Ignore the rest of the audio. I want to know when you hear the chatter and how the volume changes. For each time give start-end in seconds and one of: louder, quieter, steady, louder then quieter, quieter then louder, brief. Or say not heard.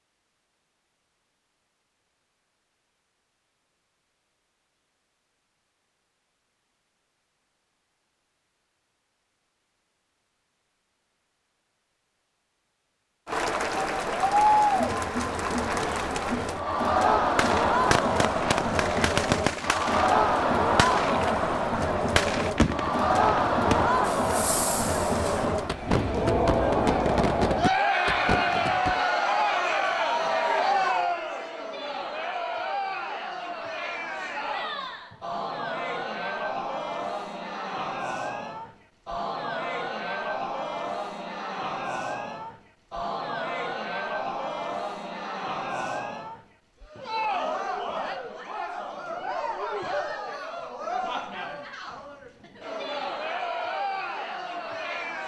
13.2-55.2 quieter.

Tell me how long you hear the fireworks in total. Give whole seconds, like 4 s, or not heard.
12 s.